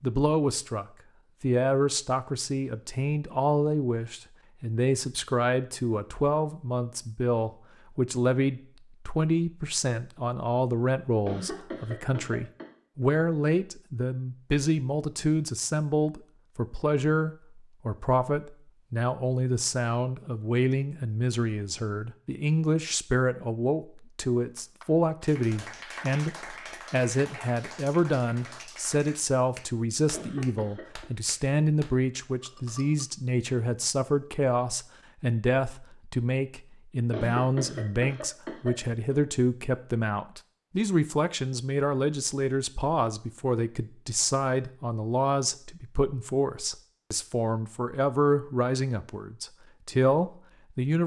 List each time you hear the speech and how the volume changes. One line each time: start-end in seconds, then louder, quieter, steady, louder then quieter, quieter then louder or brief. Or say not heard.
0.0-51.0 steady.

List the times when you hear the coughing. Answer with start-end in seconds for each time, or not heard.
11.2-12.7, 30.1-31.1, 37.1-39.2.